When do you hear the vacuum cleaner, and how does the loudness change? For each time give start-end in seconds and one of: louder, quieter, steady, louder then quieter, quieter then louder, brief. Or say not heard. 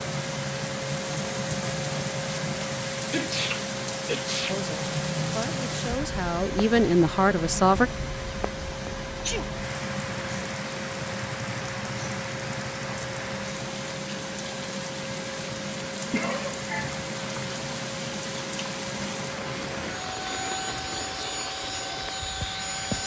0.0-23.0 steady.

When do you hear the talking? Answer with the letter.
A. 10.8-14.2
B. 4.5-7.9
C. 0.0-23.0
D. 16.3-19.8
B.